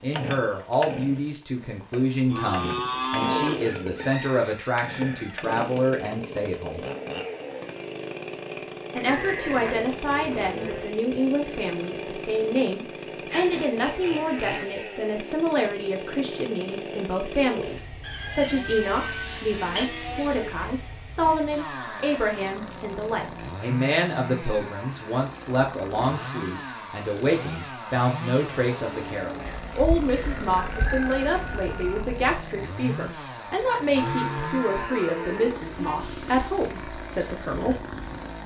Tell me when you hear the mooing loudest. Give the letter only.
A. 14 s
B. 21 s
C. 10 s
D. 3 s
D.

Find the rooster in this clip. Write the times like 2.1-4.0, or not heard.
3.6-5.4, 18.0-19.9, 29.4-32.4.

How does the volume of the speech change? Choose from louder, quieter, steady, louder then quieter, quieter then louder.
steady.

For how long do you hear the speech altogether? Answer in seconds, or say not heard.
36 s.